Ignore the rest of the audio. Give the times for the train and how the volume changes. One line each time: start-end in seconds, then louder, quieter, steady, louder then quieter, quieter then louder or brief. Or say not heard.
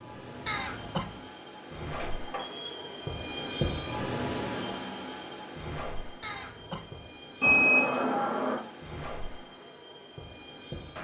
0.0-10.9 louder then quieter.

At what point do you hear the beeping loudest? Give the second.
8 s.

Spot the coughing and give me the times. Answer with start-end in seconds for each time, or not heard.
0.5-1.2, 6.2-7.0.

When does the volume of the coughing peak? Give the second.
1 s.